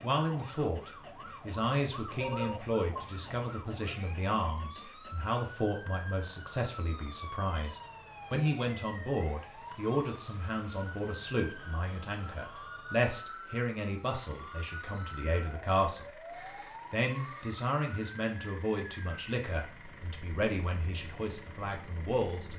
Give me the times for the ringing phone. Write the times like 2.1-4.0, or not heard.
2.2-3.0, 11.6-12.8, 16.3-17.7.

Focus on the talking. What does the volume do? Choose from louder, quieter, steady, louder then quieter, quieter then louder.
steady.